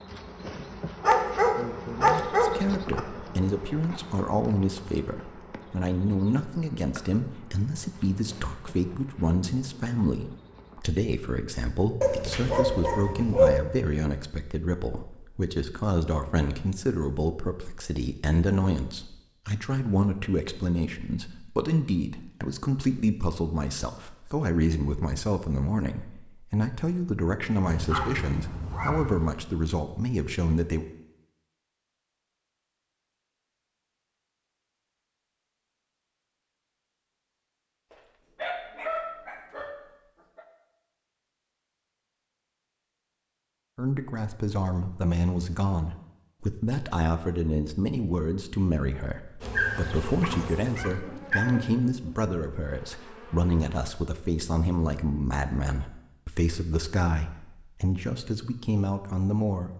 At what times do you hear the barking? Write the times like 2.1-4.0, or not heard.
1.0-3.0, 12.0-13.6, 27.6-29.3, 37.9-40.5, 49.5-51.6.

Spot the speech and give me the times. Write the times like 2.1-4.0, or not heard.
2.4-30.9, 43.8-59.7.